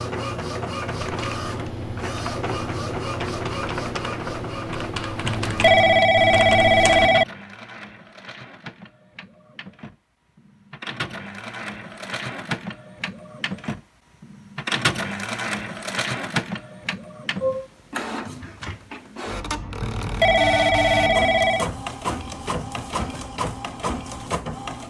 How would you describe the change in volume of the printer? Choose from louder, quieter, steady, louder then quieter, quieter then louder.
quieter then louder.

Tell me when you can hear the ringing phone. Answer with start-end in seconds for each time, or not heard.
5.2-7.2, 19.8-21.7.